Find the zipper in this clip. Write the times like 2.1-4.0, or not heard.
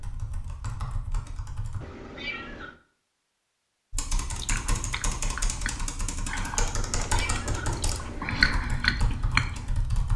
not heard.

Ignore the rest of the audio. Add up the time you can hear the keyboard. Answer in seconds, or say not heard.
8 s.